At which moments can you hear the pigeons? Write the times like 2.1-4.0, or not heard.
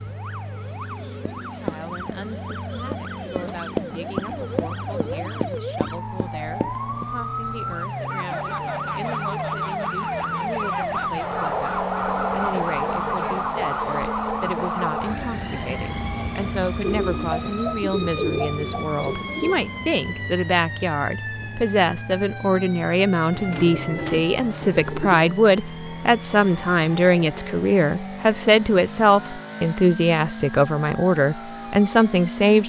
3.4-5.5, 16.8-19.6, 23.3-25.2.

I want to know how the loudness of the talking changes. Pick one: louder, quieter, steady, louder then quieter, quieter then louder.
louder.